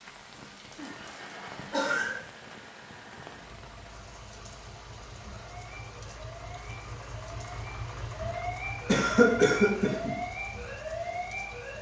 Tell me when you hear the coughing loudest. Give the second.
9 s.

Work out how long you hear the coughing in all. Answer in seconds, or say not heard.
3 s.